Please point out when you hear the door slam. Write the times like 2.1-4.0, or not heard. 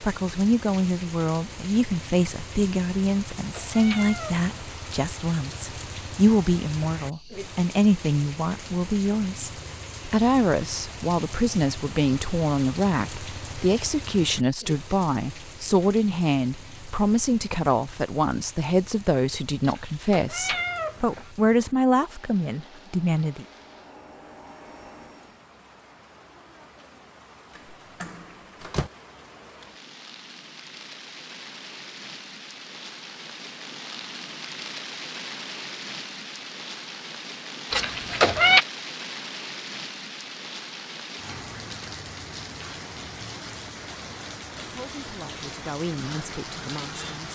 27.6-28.9.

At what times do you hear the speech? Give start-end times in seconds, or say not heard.
0.0-23.4, 44.8-47.3.